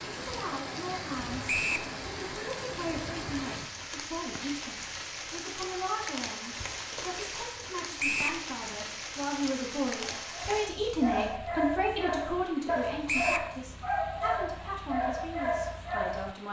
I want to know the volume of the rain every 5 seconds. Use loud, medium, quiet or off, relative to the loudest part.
loud, loud, medium, quiet.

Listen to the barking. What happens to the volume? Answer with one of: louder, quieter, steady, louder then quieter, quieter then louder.
steady.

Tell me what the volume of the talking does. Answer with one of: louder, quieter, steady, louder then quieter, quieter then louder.
louder then quieter.